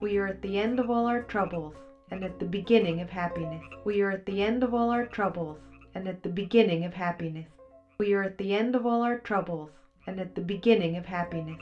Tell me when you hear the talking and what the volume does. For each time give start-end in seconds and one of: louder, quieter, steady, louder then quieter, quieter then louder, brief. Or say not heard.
0.0-11.5 steady.